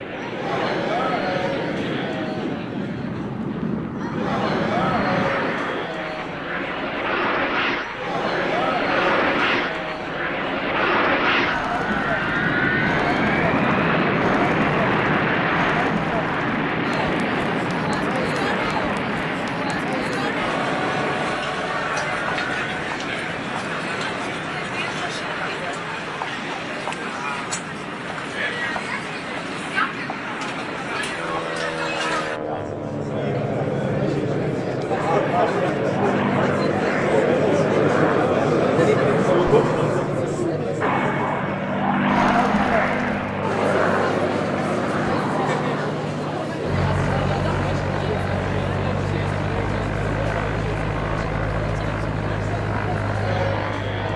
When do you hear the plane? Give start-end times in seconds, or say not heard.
0.0-54.1.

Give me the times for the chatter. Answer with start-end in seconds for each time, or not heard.
0.0-54.1.